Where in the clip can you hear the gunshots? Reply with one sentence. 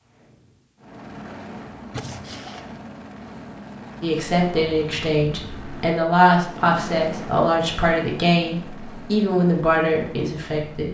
The gunshots can be heard from 1.9 to 2.8 s.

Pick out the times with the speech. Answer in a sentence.
You can hear the speech from 4.0 to 10.8 s.